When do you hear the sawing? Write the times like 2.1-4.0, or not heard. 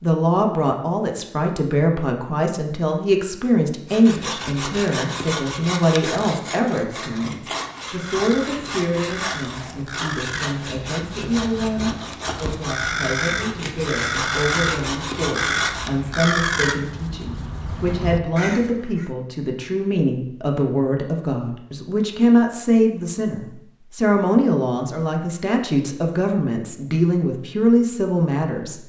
3.9-15.9.